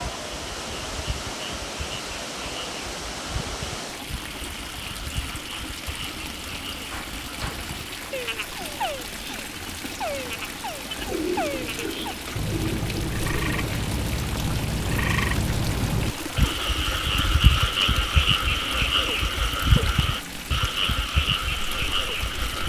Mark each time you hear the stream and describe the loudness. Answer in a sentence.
The stream can be heard from 0.0 to 22.6 s, at a steady volume.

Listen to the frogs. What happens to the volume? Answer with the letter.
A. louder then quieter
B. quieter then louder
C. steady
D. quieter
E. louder
E.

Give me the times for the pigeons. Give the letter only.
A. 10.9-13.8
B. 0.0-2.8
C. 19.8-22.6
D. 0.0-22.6
A.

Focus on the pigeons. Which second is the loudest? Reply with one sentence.
The volume of the pigeons peaks at 11 seconds.